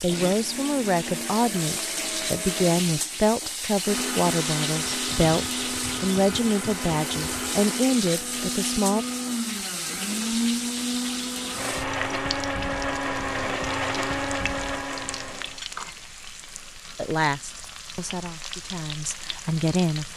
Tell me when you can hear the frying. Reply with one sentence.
You can hear the frying from 0.0 to 20.1 s.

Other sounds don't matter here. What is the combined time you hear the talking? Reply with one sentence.
The talking can be heard for 12 seconds in total.